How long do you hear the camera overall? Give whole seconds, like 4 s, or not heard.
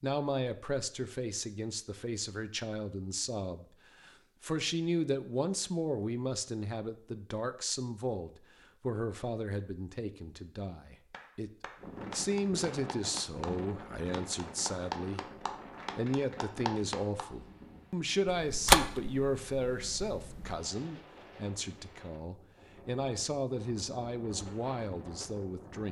2 s.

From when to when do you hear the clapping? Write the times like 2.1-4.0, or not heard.
11.1-17.2.